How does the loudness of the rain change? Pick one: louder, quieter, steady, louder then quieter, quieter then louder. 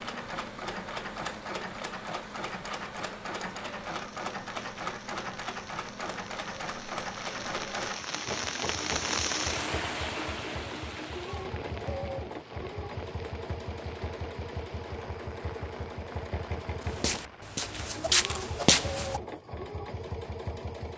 louder then quieter.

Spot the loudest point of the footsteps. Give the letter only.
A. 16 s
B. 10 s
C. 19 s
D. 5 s
C.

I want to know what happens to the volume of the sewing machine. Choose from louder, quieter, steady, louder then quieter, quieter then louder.
steady.